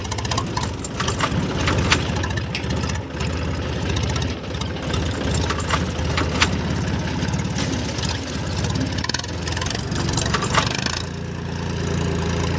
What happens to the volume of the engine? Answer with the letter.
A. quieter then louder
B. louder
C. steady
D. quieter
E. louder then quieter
C.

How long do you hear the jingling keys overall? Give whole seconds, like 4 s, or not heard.
5 s.